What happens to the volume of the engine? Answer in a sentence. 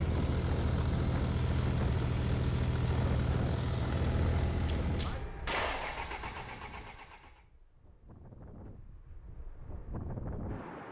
The volume of the engine goes down.